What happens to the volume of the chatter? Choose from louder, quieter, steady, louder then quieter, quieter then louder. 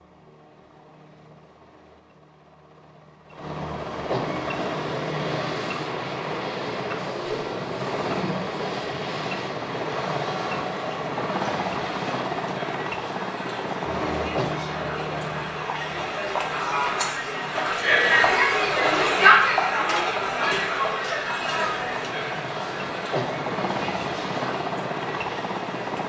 louder then quieter.